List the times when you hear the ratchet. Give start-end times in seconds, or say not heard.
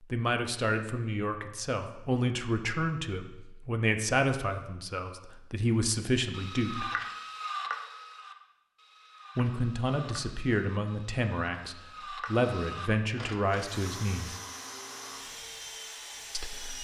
6.3-13.8.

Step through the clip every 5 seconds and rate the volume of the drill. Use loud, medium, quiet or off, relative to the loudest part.
off, off, loud, loud.